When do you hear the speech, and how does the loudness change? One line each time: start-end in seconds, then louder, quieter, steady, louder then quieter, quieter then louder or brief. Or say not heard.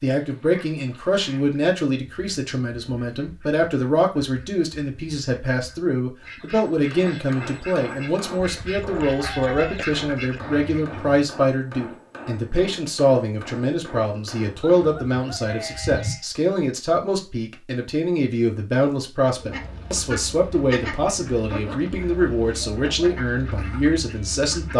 0.0-24.7 steady.